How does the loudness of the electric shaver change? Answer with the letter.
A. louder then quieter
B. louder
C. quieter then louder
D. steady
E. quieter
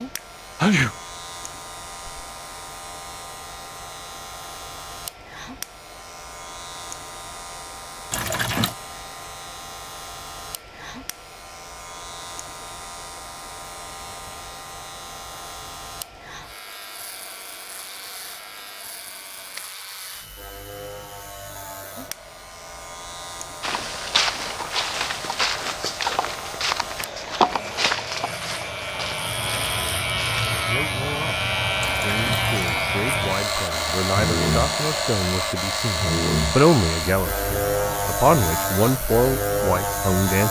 B.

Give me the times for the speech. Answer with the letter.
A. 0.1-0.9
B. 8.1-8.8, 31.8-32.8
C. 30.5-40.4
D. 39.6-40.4
C.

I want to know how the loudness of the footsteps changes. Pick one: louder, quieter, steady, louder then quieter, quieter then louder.
quieter.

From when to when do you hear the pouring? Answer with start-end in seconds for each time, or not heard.
8.1-8.8, 31.8-32.8.